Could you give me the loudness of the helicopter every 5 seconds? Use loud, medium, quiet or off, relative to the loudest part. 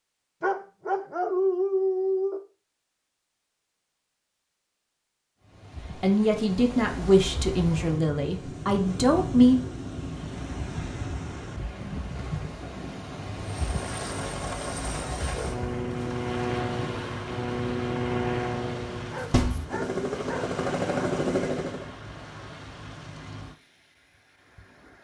off, off, medium, loud, loud.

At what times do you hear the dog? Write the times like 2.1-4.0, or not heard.
0.4-2.4, 19.1-20.6.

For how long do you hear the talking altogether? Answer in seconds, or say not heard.
4 s.